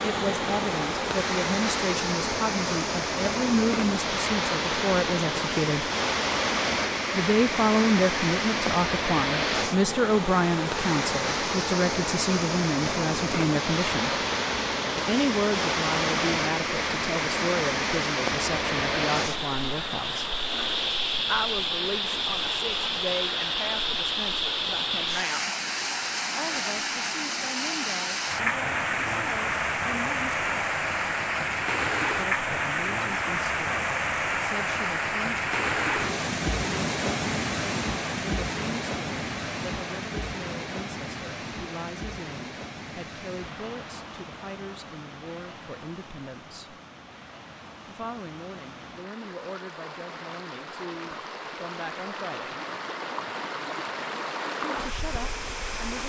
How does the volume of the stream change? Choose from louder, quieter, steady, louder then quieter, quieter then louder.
quieter.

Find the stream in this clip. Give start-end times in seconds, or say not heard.
0.0-56.0.